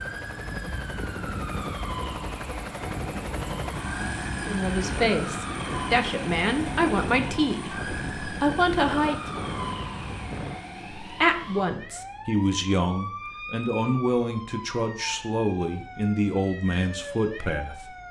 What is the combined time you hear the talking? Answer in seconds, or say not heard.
12 s.